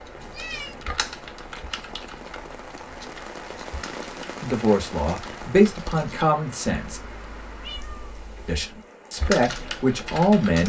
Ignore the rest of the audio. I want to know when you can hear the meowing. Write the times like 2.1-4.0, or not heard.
0.2-0.8, 6.9-8.7.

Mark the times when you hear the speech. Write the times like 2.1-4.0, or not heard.
4.4-7.0, 8.4-10.6.